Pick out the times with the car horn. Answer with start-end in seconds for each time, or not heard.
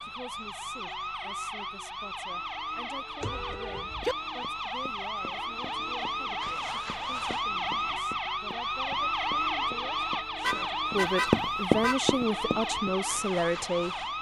3.2-4.2, 10.4-12.0.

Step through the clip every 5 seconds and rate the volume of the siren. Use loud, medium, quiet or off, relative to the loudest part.
medium, loud, loud.